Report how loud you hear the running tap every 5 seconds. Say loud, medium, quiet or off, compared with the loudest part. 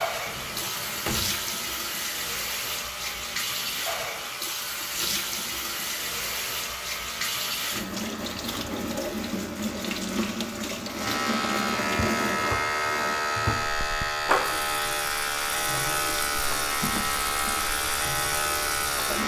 loud, loud, loud, medium.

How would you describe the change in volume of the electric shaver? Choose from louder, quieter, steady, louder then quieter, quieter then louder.
louder.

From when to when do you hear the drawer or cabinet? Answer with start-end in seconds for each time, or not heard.
0.2-1.4, 16.8-17.7.